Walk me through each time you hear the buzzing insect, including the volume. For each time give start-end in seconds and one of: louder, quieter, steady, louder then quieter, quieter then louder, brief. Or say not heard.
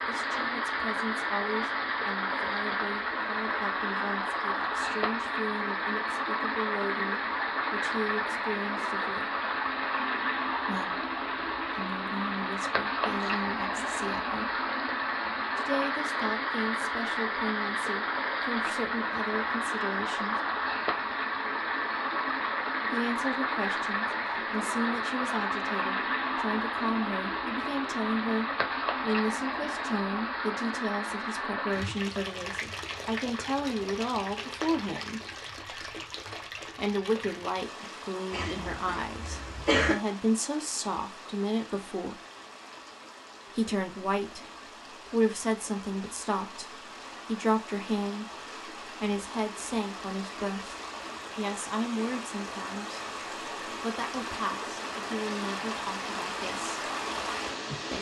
not heard.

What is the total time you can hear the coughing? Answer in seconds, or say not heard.
2 s.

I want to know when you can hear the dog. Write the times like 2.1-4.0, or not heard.
not heard.